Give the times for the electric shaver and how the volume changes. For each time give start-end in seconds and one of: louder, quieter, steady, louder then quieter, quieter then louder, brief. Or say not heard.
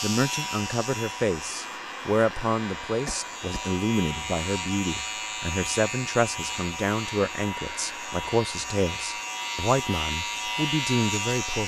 0.0-11.6 louder.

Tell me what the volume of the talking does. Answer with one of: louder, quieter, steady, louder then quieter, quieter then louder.
steady.